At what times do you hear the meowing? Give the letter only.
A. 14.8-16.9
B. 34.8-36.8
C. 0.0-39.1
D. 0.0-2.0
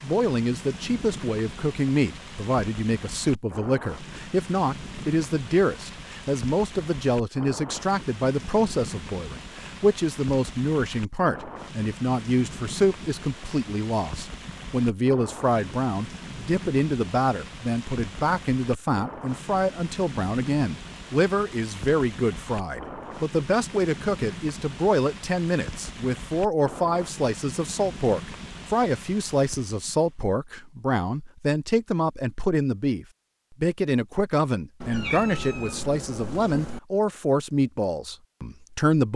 B.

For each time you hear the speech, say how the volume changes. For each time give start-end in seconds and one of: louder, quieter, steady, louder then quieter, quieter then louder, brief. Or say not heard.
0.0-39.1 steady.